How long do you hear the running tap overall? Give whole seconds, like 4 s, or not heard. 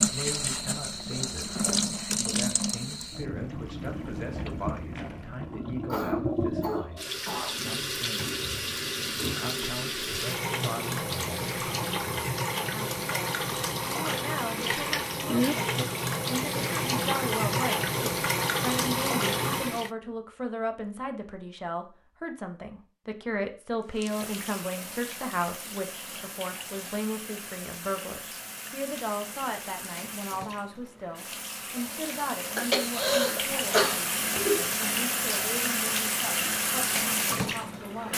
34 s.